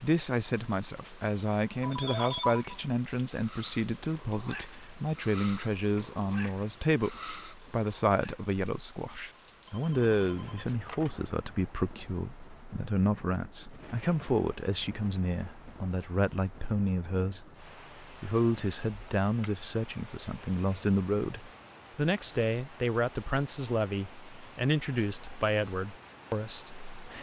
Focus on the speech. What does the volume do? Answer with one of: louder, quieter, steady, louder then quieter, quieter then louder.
steady.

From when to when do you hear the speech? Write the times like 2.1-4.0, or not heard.
0.0-27.1.